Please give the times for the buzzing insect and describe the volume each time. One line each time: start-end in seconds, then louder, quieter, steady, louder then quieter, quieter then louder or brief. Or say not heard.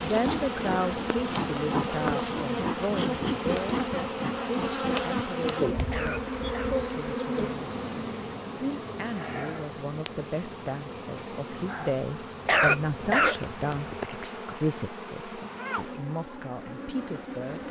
0.0-17.6 quieter.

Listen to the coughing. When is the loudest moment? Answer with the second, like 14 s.
13 s.